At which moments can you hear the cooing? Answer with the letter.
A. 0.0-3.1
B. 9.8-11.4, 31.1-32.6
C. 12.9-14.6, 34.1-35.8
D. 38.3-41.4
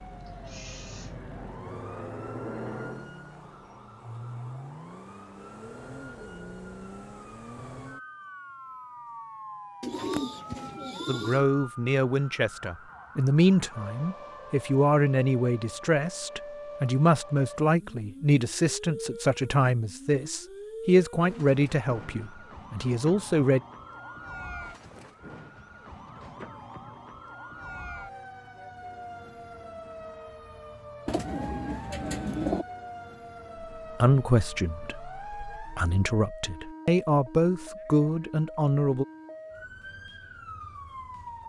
B.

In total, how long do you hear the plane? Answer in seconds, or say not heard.
3 s.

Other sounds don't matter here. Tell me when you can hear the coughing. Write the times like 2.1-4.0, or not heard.
not heard.